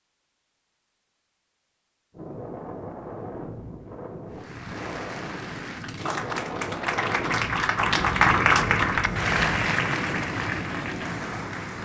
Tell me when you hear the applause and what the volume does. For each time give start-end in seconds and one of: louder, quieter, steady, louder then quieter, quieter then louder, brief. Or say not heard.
4.3-11.8 louder then quieter.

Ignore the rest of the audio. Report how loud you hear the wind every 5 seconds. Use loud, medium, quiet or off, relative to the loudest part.
medium, loud, loud.